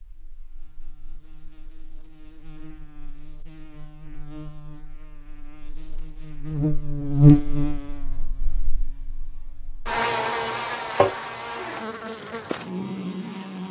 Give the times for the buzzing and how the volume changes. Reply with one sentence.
The buzzing can be heard from 0.0 to 13.6 s, getting louder then quieter.